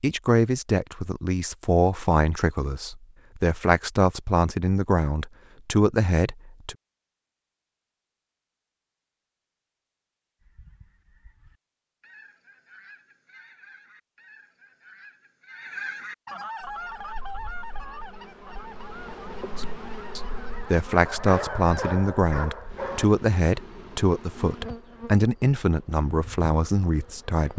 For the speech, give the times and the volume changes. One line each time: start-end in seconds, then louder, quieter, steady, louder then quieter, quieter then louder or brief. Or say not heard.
0.0-6.8 steady
19.6-27.5 steady.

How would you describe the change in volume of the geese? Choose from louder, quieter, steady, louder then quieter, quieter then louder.
louder then quieter.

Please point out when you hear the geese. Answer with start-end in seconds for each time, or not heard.
10.4-21.9.